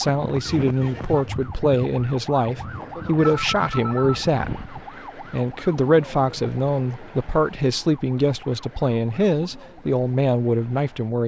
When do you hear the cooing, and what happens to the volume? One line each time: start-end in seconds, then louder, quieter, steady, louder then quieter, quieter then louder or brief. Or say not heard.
not heard.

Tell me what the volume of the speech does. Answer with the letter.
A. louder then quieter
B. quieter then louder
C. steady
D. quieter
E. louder
C.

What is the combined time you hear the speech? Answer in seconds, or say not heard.
11 s.